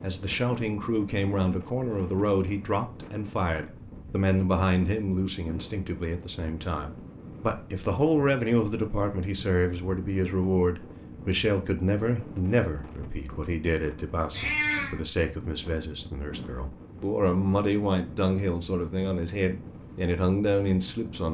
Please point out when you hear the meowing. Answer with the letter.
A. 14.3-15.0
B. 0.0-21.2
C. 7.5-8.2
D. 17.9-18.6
A.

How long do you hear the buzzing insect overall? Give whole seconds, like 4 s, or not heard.
not heard.